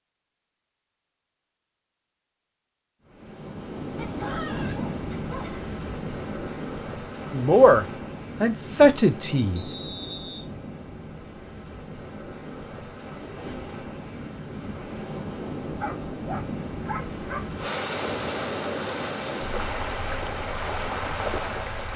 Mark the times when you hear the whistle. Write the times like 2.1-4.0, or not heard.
9.6-10.4.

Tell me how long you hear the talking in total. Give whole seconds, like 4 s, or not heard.
2 s.